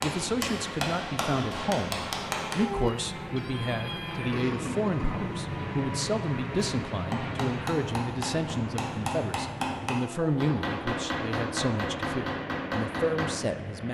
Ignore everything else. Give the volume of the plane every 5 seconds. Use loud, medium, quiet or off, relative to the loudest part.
loud, loud, medium.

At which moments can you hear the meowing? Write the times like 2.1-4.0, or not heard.
2.5-4.3.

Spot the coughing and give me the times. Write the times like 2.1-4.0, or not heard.
4.3-5.5.